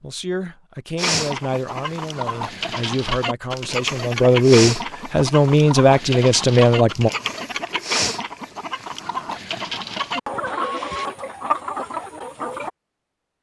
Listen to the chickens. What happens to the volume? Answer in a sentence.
The loudness of the chickens stays about the same.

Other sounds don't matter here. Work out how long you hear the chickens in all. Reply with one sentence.
The chickens can be heard for 12 seconds in total.